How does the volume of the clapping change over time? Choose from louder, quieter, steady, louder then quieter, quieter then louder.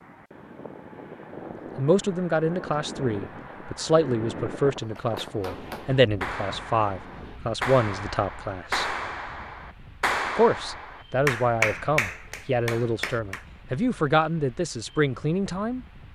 louder.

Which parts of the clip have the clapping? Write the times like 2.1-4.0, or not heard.
5.0-13.4.